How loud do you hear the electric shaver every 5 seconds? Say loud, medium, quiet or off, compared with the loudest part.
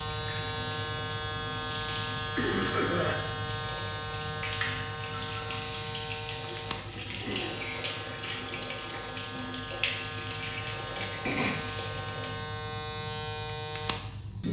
loud, medium, loud.